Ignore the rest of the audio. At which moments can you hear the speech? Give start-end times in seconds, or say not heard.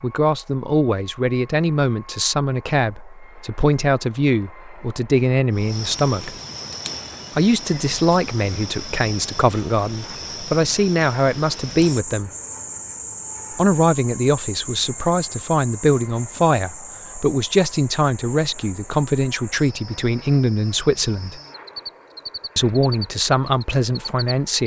0.0-6.3, 7.3-12.3, 13.6-21.4, 22.6-24.6.